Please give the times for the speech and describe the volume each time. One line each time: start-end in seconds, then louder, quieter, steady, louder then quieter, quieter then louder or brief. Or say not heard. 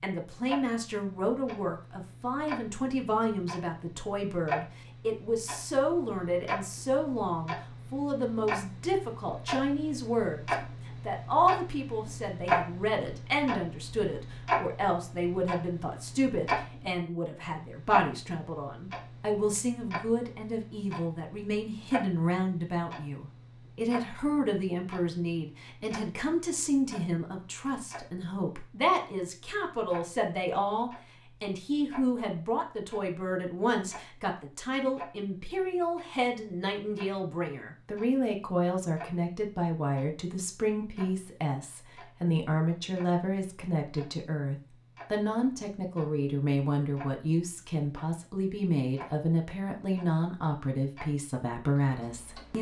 0.0-52.5 steady.